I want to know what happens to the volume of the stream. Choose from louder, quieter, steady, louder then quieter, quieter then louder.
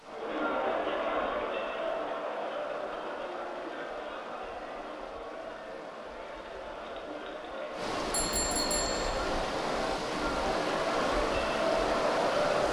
louder.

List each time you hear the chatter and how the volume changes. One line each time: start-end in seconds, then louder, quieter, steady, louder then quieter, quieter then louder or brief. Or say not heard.
0.0-12.6 quieter then louder.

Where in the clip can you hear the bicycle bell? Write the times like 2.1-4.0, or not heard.
8.1-9.2.